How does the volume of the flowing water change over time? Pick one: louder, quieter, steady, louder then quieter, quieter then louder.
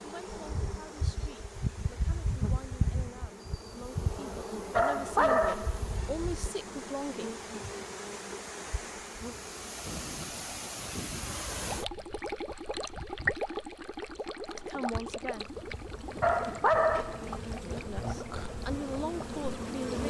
louder then quieter.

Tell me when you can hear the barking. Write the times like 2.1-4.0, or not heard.
4.8-6.0, 16.2-17.4.